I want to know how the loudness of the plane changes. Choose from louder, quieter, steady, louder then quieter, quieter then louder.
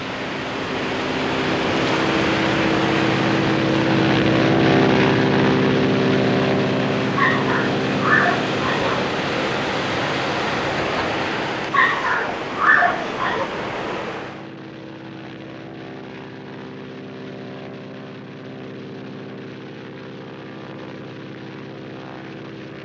quieter.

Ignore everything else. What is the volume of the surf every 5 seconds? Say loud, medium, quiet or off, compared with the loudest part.
loud, loud, loud, off, off.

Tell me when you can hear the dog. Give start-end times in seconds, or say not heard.
7.2-9.2, 11.7-13.5.